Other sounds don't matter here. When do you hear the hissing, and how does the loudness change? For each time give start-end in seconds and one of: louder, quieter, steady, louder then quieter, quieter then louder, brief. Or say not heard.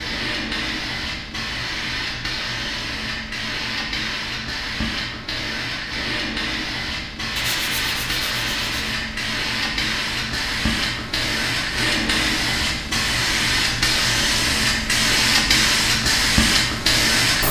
0.0-17.4 louder.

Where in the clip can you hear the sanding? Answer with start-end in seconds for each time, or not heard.
7.3-9.0.